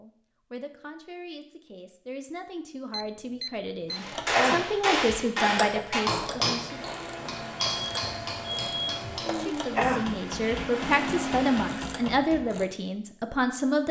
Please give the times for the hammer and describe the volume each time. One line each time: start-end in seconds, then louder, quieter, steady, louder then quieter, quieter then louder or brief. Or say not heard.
3.9-12.7 quieter.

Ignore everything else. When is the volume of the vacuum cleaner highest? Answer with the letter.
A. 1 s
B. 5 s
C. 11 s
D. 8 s
C.